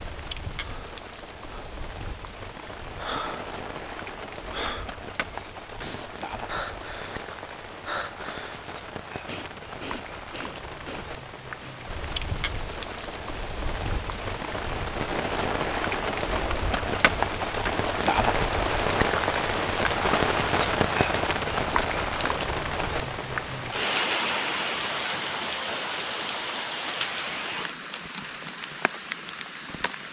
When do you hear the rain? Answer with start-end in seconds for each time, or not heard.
0.0-30.0.